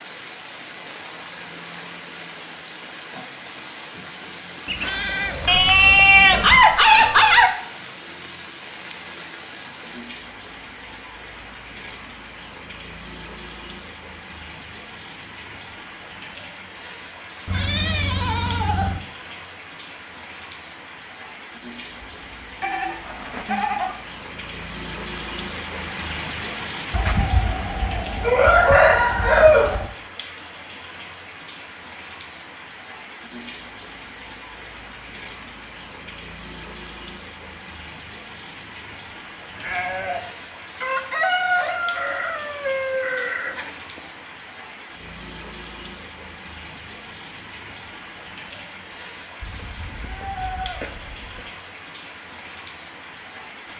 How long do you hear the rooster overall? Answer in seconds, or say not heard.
8 s.